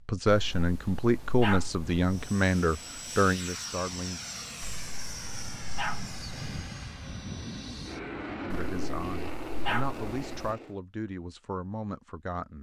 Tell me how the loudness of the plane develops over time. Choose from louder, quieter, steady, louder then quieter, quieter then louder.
steady.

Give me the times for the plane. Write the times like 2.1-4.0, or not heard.
2.0-10.8.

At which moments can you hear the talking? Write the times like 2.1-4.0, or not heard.
0.1-4.2, 8.4-12.5.